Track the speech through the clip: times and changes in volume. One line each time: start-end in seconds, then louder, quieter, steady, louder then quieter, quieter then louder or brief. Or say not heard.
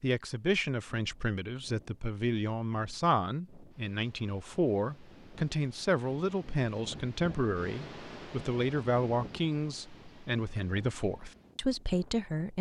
0.0-12.5 steady.